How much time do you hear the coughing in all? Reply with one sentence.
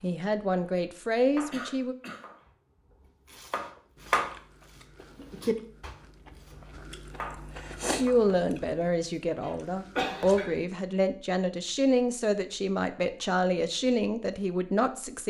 You can hear the coughing for 2 seconds altogether.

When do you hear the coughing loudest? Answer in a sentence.
The volume of the coughing peaks at 10 seconds.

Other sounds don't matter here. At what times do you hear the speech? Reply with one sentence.
The speech can be heard from 0.0 to 1.9 s and from 8.0 to 15.2 s.